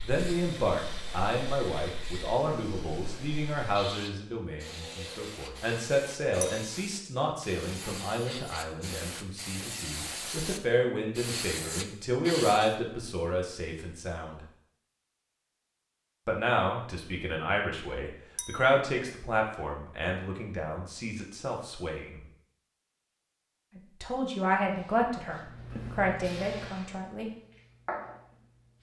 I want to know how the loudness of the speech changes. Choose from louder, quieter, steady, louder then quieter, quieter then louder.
steady.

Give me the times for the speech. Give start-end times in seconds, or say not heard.
0.0-14.4, 16.2-22.2, 23.8-27.3.